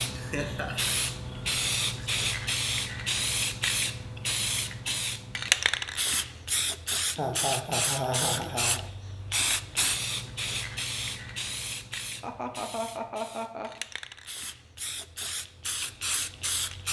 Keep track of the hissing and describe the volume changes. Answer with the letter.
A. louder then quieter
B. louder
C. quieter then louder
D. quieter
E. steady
D.